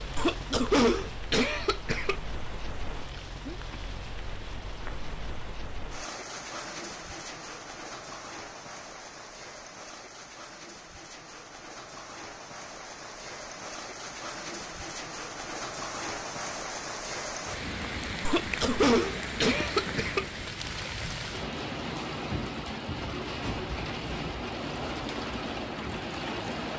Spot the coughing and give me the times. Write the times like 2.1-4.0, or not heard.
0.1-2.1, 18.2-20.2.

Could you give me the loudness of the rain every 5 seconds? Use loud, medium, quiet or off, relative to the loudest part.
medium, medium, medium, loud, loud, loud.